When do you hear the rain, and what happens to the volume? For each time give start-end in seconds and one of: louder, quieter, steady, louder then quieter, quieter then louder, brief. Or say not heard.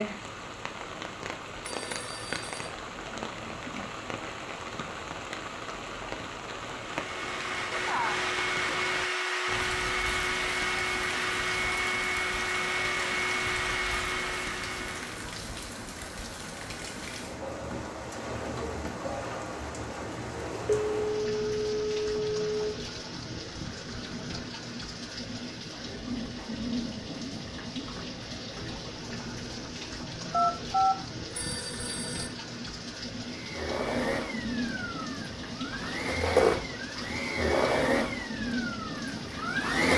0.0-39.9 steady.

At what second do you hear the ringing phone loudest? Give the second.
31 s.